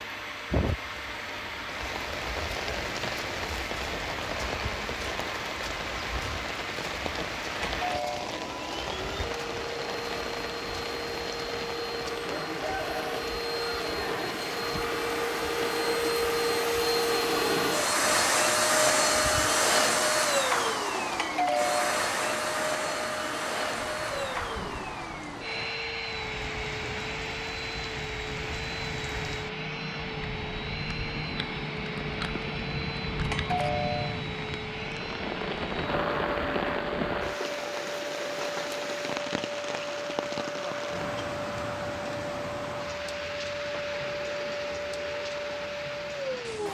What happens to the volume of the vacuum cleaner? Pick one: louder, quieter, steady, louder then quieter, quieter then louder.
louder then quieter.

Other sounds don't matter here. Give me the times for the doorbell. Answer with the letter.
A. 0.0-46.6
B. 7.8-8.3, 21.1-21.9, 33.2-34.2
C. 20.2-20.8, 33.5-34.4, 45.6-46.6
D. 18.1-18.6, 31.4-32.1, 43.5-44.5
B.